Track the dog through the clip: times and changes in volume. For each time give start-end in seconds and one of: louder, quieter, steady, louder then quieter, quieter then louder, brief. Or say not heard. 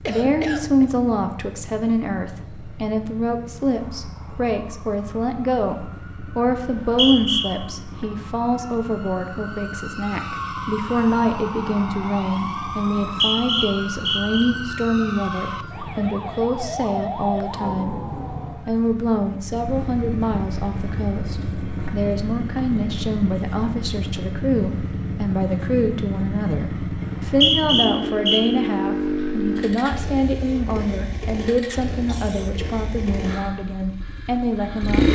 not heard.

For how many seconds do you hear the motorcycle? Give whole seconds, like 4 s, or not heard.
35 s.